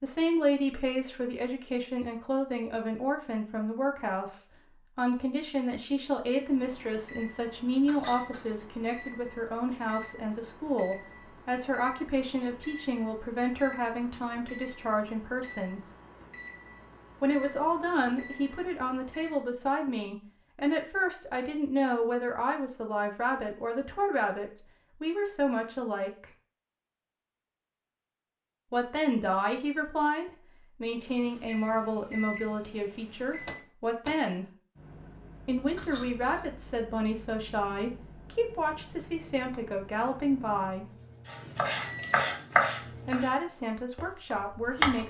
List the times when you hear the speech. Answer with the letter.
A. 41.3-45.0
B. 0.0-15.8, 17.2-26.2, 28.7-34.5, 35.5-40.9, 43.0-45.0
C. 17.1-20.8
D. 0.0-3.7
B.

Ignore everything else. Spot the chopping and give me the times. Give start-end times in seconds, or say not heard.
41.3-45.0.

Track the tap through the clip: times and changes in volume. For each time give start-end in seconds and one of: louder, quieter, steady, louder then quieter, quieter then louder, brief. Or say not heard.
not heard.